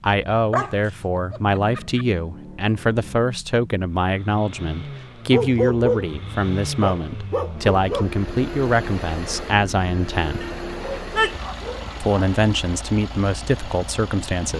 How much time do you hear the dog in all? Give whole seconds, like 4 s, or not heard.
6 s.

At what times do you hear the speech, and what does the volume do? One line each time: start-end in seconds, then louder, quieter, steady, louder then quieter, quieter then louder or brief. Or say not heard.
0.0-10.4 steady
12.0-14.5 brief.